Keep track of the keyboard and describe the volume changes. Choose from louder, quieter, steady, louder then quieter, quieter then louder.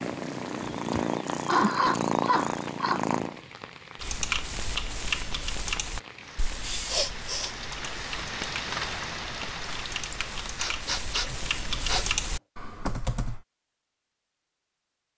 quieter then louder.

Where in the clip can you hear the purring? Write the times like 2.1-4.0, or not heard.
0.0-3.4.